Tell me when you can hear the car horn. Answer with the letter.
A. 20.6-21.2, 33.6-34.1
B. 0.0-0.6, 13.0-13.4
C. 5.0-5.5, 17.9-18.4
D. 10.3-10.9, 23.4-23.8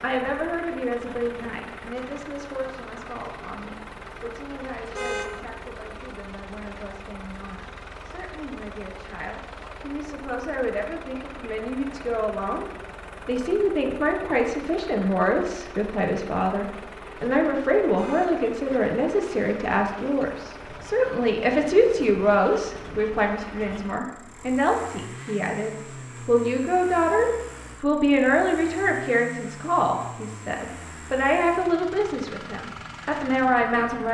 C.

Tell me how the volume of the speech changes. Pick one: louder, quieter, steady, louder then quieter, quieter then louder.
louder.